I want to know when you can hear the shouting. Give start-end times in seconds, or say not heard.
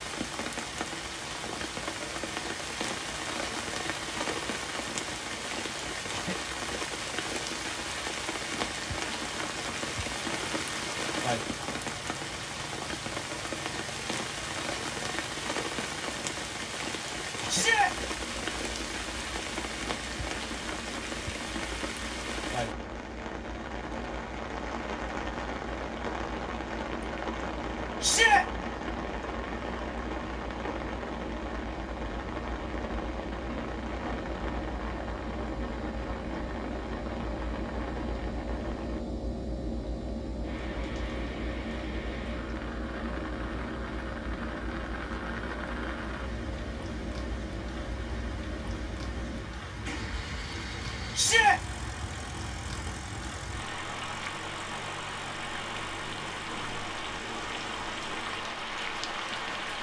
17.4-17.9, 28.0-28.4, 51.1-51.6.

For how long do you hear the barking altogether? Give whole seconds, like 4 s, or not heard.
not heard.